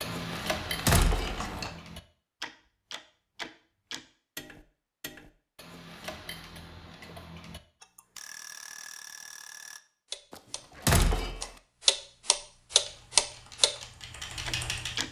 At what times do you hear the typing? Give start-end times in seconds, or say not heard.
0.0-1.7, 12.7-15.0.